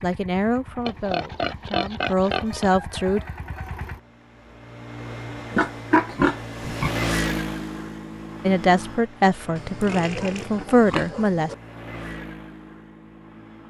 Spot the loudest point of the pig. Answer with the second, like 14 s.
6 s.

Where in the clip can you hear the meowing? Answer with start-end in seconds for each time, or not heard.
not heard.